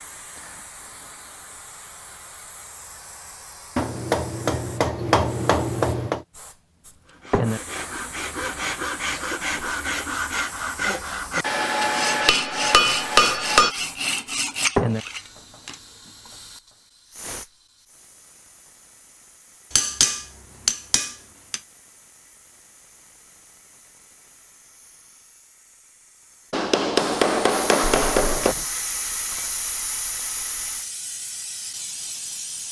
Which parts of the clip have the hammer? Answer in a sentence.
You can hear the hammer from 3.8 to 6.2 s, from 11.4 to 13.8 s, from 19.7 to 21.6 s and from 26.5 to 28.6 s.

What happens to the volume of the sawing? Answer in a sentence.
The volume of the sawing stays about the same.